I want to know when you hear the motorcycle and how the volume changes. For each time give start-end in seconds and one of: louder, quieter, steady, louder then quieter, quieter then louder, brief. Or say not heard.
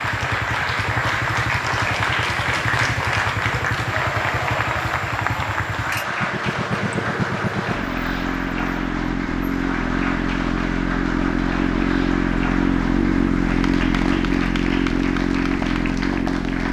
0.0-16.6 louder.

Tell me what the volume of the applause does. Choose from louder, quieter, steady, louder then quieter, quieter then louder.
quieter.